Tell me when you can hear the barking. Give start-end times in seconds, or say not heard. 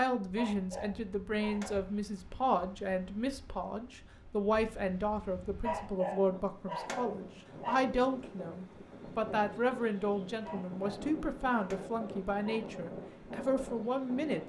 0.3-1.9, 5.6-7.9, 10.4-12.7.